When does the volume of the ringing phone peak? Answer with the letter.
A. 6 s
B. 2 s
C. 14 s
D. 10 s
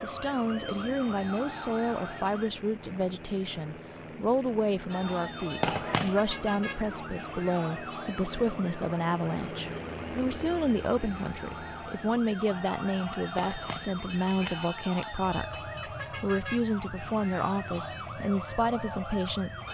A.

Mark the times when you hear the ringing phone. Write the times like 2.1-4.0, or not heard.
5.6-6.2, 13.3-15.2.